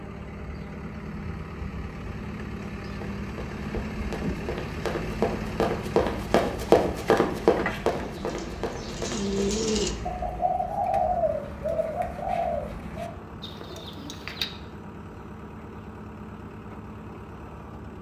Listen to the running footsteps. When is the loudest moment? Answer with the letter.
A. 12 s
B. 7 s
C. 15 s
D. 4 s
B.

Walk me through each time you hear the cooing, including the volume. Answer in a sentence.
The cooing can be heard from 7.5 to 14.5 s, getting louder then quieter.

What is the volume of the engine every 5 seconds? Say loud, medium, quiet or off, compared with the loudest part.
loud, loud, medium, medium.